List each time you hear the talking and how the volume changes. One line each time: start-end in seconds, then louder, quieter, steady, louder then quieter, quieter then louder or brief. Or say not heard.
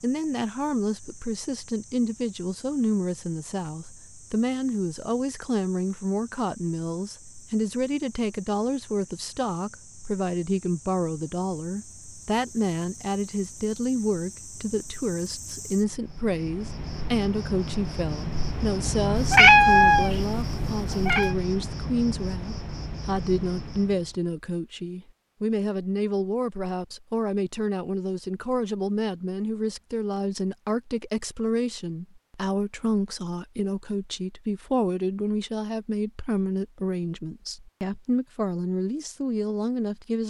0.0-40.2 steady.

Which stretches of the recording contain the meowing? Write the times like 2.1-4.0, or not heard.
19.1-21.4.